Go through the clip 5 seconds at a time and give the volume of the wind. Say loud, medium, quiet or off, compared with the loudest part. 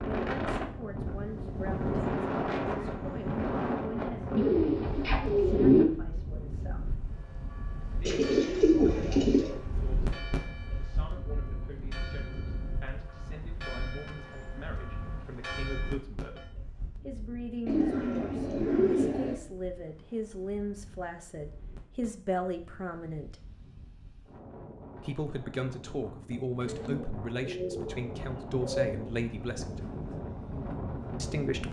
loud, medium, medium, quiet, quiet, medium, medium.